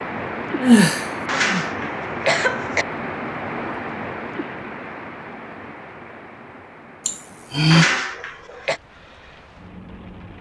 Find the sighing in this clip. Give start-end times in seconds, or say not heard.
0.6-1.6, 7.0-7.8.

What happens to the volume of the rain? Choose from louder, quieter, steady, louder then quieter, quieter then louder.
quieter.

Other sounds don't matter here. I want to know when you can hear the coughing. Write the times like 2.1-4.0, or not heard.
1.2-2.9, 7.7-8.8.